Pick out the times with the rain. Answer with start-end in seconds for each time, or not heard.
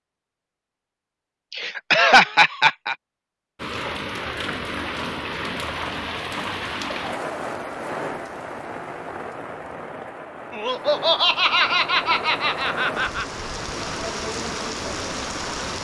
3.5-15.7.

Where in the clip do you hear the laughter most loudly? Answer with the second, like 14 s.
2 s.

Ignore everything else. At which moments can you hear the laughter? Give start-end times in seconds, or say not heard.
1.5-3.0, 10.5-13.2.